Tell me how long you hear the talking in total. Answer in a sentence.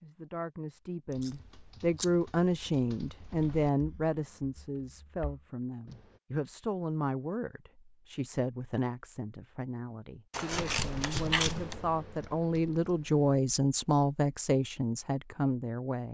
You can hear the talking for 16 seconds altogether.